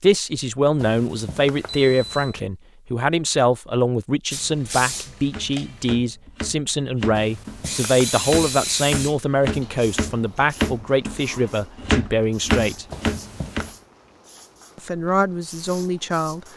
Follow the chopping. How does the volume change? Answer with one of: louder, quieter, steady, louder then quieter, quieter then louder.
louder.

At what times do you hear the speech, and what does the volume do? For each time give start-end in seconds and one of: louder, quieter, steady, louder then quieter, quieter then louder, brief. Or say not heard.
0.0-12.8 steady
14.8-16.4 brief.